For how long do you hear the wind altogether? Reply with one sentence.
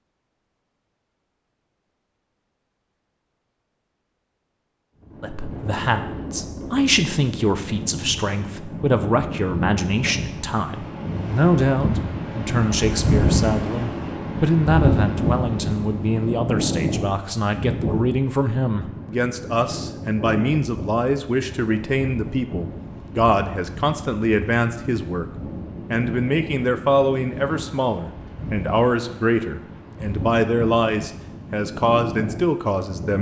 The wind can be heard for 28 seconds in total.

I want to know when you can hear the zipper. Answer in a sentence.
You can't hear the zipper here.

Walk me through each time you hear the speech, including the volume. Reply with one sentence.
The speech can be heard from 5.2 to 33.1 s, at a steady volume.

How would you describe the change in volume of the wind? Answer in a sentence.
The volume of the wind goes up, then down.